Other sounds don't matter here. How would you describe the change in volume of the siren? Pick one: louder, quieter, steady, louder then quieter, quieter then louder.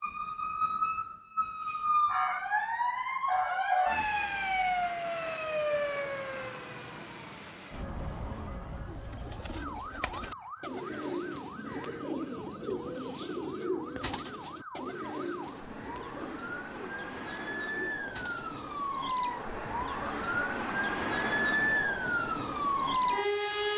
quieter then louder.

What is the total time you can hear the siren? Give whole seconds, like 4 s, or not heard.
24 s.